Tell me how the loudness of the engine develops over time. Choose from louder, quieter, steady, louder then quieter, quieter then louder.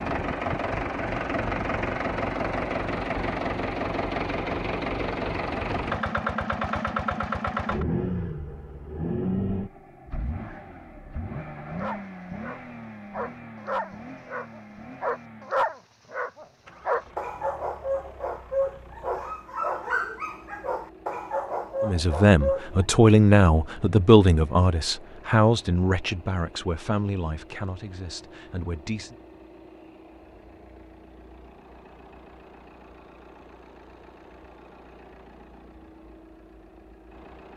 quieter.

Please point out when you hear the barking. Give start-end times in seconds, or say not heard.
11.7-22.9.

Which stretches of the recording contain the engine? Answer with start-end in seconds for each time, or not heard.
0.0-37.5.